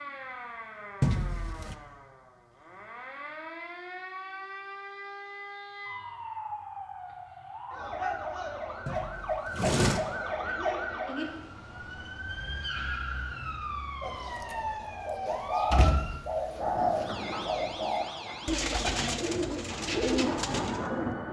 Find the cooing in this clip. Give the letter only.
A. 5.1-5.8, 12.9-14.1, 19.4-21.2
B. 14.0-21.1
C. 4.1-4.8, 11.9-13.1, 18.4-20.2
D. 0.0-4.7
B.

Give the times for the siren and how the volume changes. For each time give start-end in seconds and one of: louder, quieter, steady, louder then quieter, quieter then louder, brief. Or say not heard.
0.0-21.2 louder then quieter.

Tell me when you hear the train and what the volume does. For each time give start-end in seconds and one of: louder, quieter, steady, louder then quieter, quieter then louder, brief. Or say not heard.
16.6-21.2 quieter then louder.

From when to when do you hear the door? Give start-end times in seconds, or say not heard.
1.0-1.8, 8.8-10.0, 15.2-17.1.